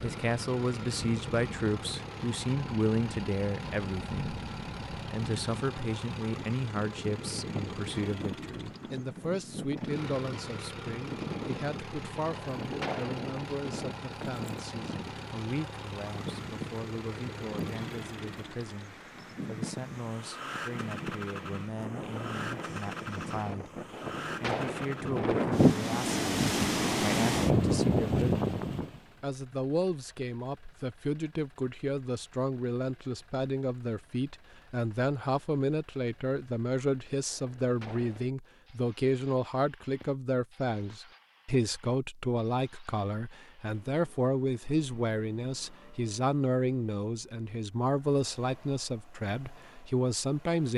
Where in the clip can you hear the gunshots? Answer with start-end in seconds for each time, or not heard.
12.3-13.3, 23.9-24.9, 37.3-38.3.